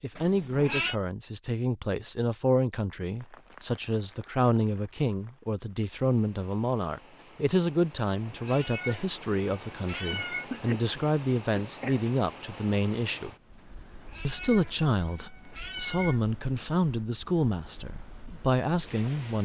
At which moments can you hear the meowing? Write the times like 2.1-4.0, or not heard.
0.1-0.9, 8.0-10.4, 13.6-16.2.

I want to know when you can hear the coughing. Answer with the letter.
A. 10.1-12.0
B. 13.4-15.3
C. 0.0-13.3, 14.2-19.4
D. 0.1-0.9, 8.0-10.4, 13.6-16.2
A.